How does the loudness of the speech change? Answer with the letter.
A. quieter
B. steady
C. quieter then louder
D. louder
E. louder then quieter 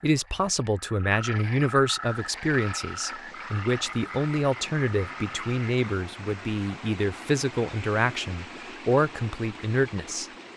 B.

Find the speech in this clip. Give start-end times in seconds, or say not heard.
0.0-10.2.